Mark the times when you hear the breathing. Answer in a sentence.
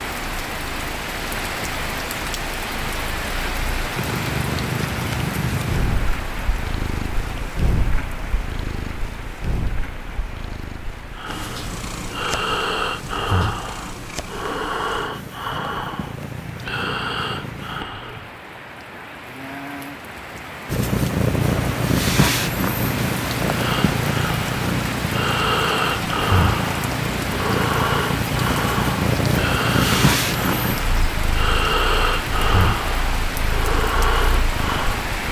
You can hear the breathing from 11.1 to 18.3 s and from 23.5 to 35.0 s.